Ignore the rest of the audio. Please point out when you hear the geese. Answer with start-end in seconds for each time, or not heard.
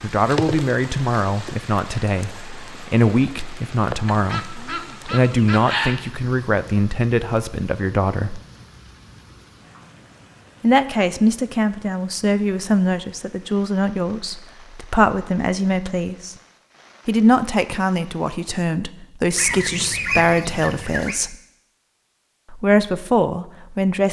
4.0-6.0, 19.4-21.1.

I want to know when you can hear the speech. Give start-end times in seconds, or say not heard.
0.0-8.4, 10.6-16.4, 17.1-21.4, 22.5-24.0.